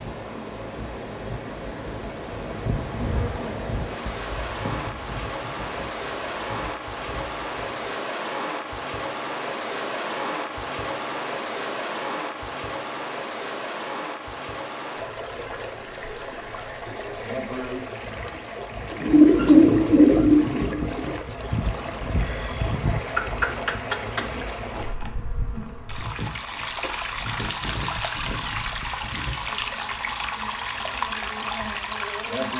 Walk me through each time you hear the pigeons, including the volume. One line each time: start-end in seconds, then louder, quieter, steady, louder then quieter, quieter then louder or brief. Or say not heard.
19.0-24.6 quieter then louder.